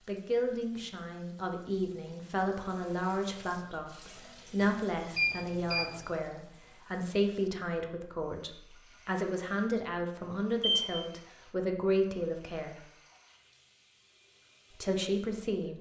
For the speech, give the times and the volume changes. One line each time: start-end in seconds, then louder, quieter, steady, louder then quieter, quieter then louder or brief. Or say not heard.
0.1-12.8 steady
14.7-15.7 brief.